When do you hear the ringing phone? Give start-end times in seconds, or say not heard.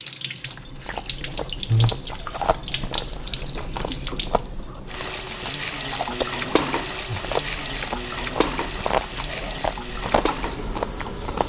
not heard.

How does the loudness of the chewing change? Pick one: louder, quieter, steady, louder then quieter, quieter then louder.
quieter then louder.